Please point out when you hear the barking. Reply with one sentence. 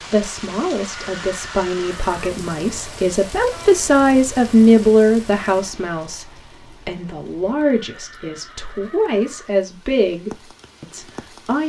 The barking can't be heard in this clip.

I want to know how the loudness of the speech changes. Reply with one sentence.
The loudness of the speech goes up, then down.